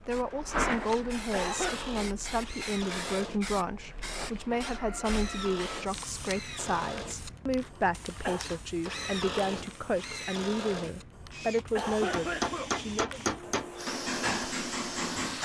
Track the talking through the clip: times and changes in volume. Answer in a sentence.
You can hear the talking from 0.1 to 13.2 s, at a steady volume.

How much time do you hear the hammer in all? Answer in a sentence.
The hammer can be heard for 3 seconds in total.